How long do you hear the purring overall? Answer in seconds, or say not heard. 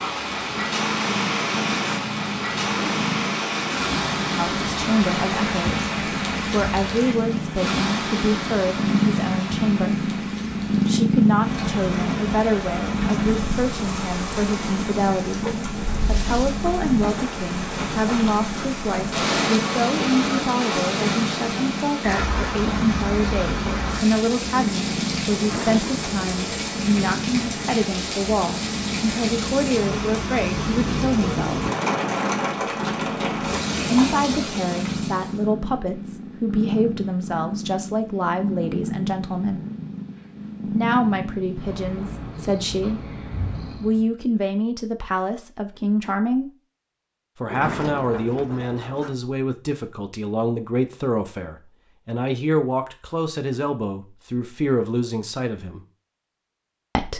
44 s.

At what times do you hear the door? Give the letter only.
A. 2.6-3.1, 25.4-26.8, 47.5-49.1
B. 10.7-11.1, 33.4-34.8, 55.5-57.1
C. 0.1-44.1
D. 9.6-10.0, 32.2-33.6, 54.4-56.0
A.